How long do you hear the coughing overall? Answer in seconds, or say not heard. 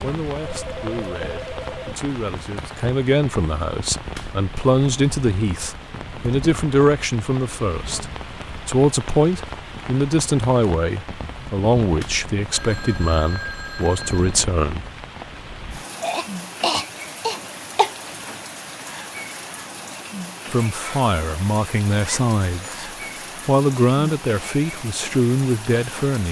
2 s.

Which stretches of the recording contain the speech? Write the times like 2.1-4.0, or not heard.
0.0-14.8, 20.5-26.2.